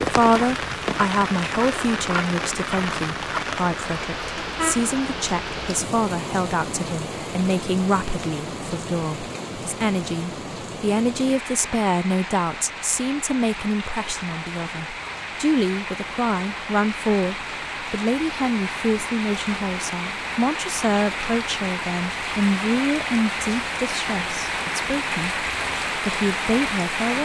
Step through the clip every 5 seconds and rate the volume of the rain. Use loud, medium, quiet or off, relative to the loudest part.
loud, medium, medium, medium, loud, loud.